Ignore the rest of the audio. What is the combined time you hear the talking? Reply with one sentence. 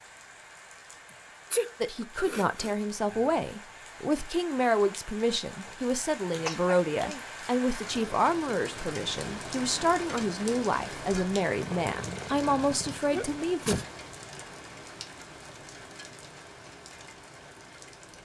You can hear the talking for 12 seconds altogether.